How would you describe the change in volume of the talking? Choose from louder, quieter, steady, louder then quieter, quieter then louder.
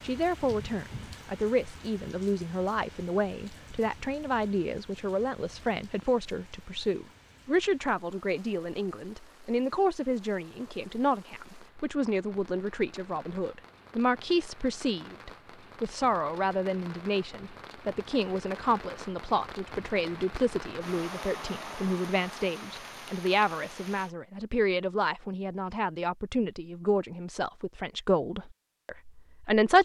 steady.